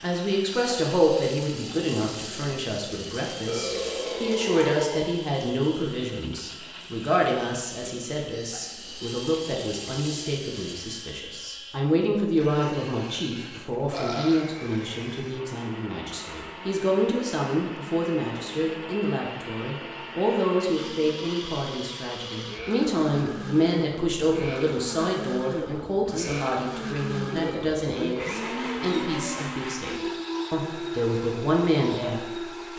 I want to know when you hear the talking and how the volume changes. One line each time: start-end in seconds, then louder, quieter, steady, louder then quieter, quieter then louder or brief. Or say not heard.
0.0-32.7 steady.